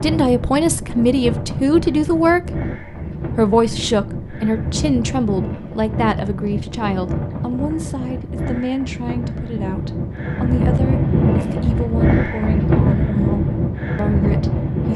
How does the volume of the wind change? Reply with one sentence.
The loudness of the wind goes up.